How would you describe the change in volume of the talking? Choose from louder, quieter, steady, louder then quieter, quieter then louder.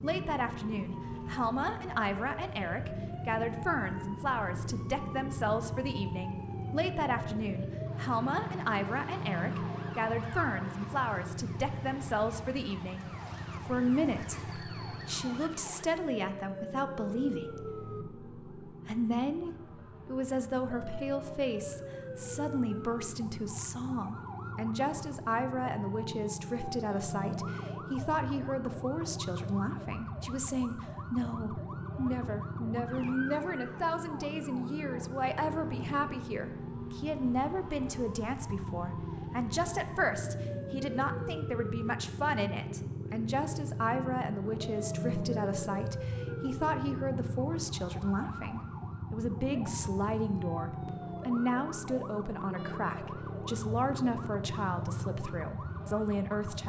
steady.